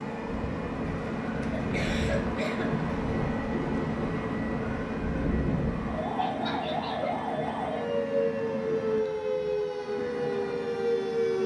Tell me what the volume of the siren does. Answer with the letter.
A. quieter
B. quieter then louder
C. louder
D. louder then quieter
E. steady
C.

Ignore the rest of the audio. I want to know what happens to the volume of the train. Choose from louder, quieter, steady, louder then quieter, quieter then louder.
quieter.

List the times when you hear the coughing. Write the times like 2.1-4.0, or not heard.
1.6-2.7, 6.2-7.2.